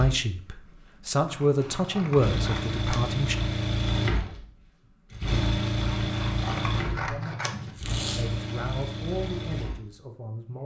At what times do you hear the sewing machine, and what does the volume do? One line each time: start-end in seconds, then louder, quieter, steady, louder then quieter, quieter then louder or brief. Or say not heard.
0.0-10.6 louder then quieter.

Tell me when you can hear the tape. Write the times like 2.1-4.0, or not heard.
7.8-8.4.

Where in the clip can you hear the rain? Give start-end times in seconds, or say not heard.
not heard.